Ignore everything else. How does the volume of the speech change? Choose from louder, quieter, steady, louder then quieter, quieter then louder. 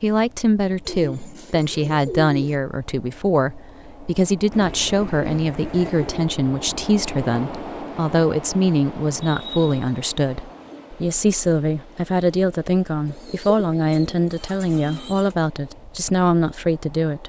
steady.